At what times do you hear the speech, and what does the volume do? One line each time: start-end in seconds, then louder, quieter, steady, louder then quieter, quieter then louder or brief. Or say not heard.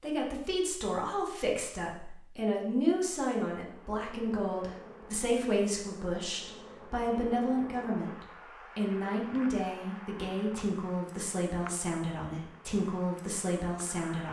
0.0-14.2 steady.